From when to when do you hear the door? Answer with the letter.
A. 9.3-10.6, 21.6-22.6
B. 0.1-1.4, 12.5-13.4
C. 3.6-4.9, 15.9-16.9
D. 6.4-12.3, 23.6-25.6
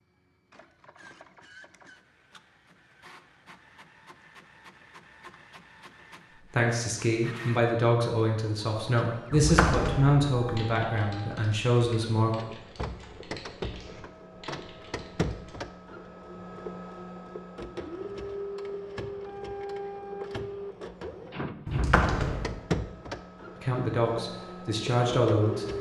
A.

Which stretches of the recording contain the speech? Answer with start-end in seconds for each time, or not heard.
6.4-12.3, 23.6-25.6.